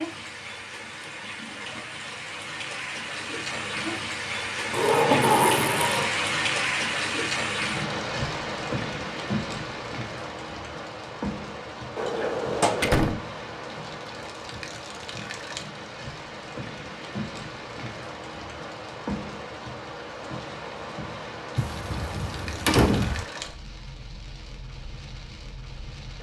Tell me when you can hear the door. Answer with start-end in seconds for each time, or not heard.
4.7-6.2, 11.9-13.2, 21.6-23.2.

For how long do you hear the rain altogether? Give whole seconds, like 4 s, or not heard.
26 s.